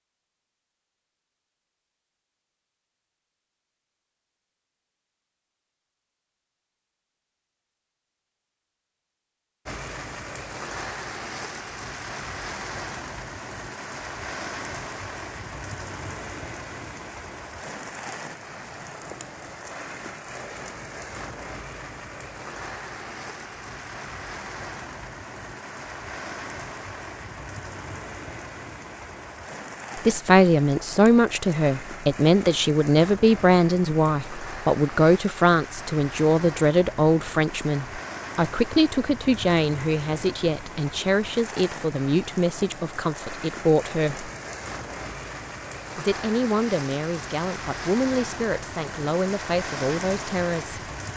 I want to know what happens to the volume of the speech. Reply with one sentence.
The loudness of the speech goes down.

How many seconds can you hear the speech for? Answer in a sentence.
You can hear the speech for 19 seconds altogether.